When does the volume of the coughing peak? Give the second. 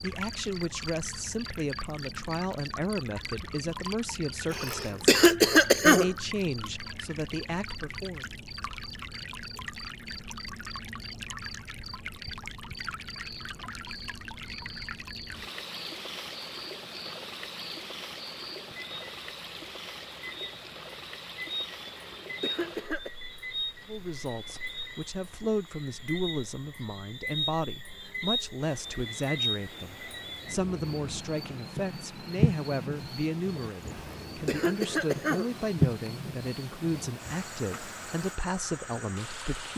5 s.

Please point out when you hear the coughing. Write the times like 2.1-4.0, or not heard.
4.5-6.1, 21.9-23.1, 33.9-36.1.